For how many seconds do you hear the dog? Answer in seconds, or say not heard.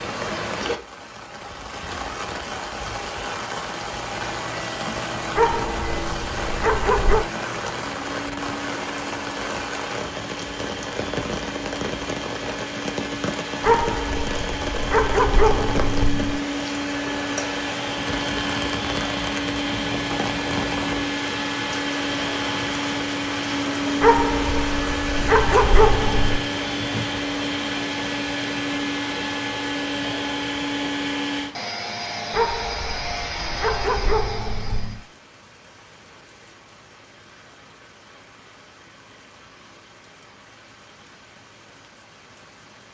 10 s.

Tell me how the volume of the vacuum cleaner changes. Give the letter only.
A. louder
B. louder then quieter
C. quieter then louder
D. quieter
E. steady
A.